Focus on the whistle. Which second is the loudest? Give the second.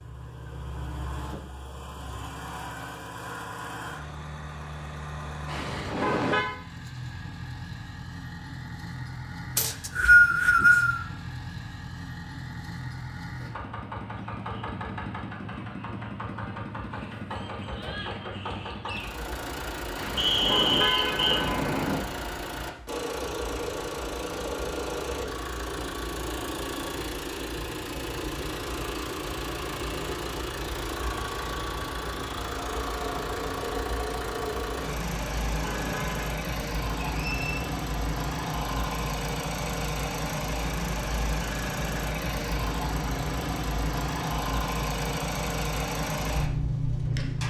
10 s.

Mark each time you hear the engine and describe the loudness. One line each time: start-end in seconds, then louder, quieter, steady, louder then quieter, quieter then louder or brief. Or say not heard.
0.0-47.4 louder.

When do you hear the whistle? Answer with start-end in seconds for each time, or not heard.
9.6-11.0, 20.1-21.4, 37.1-37.6.